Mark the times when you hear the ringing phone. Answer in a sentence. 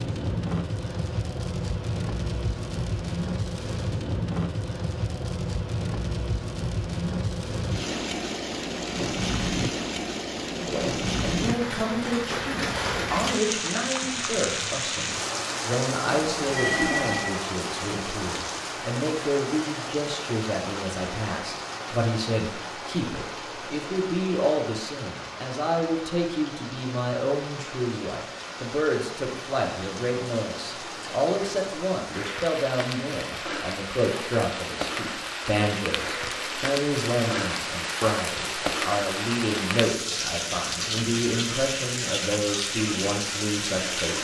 You can hear the ringing phone from 16.2 to 17.4 s.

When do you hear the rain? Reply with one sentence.
You can hear the rain from 0.0 to 44.1 s.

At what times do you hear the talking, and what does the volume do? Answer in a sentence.
You can hear the talking from 10.6 to 44.1 s, at a steady volume.